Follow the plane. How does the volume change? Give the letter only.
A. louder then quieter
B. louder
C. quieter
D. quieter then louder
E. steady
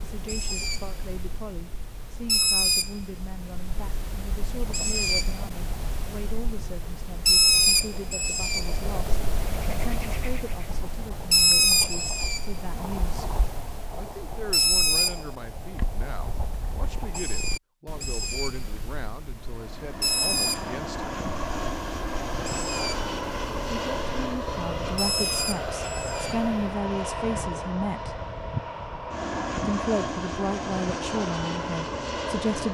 E.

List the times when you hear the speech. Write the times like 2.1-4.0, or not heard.
0.0-13.3, 13.9-21.1, 23.7-28.1, 29.6-32.6.